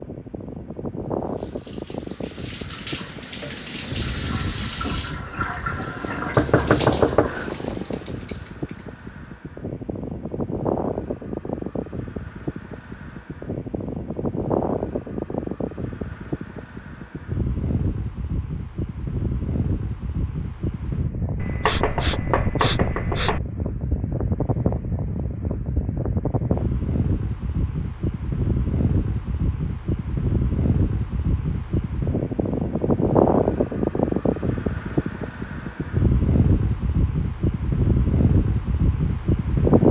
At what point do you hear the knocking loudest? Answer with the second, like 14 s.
7 s.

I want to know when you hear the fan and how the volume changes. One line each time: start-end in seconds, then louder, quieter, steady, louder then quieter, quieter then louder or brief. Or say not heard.
0.0-39.8 louder.